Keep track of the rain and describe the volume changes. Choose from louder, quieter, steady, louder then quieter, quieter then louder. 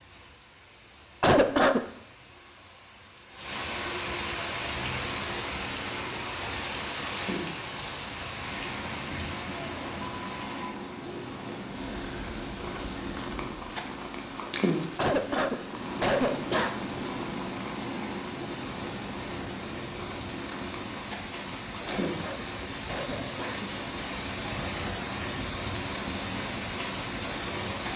quieter then louder.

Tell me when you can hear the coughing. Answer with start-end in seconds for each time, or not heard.
1.2-1.9, 14.9-16.8, 21.9-23.8.